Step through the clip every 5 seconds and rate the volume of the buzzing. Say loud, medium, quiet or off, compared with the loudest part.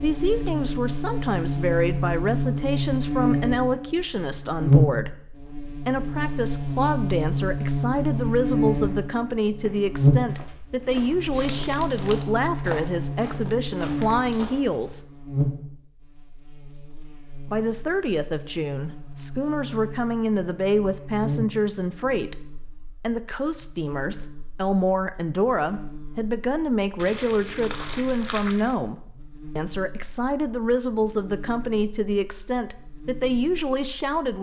loud, loud, loud, medium, quiet, quiet, quiet.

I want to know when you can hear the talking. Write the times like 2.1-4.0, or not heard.
0.0-15.1, 17.5-34.3.